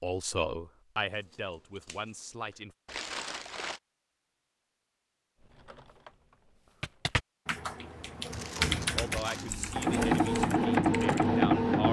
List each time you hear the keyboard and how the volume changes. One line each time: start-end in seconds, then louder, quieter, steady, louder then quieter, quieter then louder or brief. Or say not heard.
5.4-6.1 brief
6.8-11.3 louder then quieter.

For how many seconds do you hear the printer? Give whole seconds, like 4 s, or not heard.
3 s.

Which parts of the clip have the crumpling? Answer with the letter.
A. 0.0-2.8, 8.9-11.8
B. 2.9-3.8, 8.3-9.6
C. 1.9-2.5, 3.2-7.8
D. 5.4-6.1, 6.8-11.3
B.